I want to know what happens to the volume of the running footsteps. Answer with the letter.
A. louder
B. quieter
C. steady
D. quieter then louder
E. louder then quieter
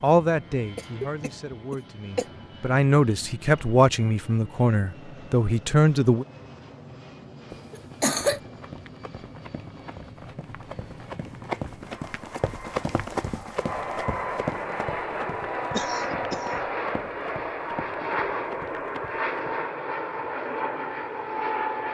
E.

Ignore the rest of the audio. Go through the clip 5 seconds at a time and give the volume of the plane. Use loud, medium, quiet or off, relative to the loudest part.
quiet, quiet, medium, loud, loud.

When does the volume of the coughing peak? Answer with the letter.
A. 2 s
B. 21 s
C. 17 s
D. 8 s
D.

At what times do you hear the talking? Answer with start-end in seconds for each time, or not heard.
0.0-6.2.